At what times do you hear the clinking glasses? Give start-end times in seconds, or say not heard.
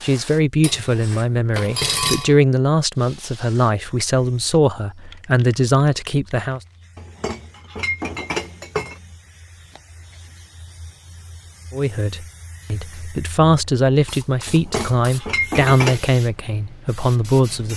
0.6-2.4, 7.0-9.0, 14.4-16.1.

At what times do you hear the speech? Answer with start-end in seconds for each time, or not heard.
0.0-6.6, 11.7-17.7.